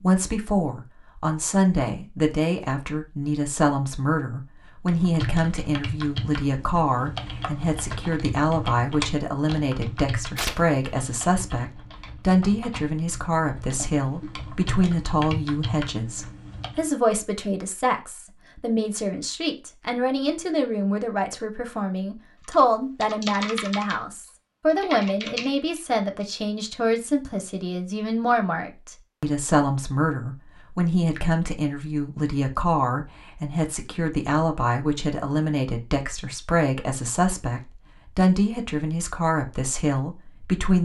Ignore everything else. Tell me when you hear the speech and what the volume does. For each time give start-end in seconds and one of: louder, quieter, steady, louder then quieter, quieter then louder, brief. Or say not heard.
0.0-40.8 steady.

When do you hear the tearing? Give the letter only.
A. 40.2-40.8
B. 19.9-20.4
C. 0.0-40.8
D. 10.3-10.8
D.